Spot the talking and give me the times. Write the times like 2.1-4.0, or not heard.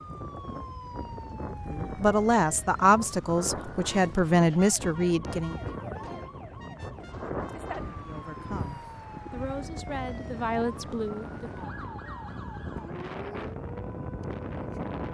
1.7-5.5, 8.1-11.7.